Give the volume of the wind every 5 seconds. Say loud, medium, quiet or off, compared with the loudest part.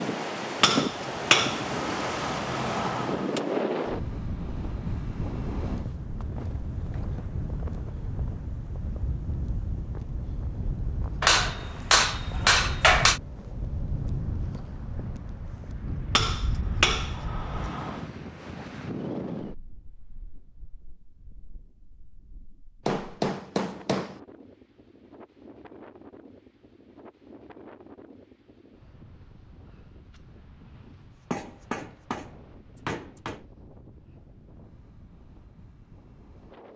loud, medium, medium, medium, quiet, quiet, quiet, quiet.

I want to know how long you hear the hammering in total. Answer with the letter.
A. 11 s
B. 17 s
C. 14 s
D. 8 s
A.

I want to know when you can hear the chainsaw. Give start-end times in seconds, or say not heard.
not heard.